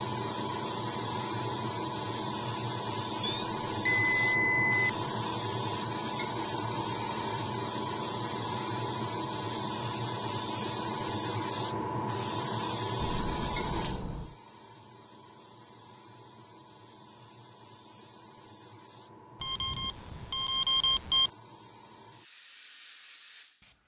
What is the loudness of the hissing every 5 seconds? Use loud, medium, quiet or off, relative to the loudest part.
loud, loud, loud, quiet, quiet.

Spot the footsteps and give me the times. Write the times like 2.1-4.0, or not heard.
not heard.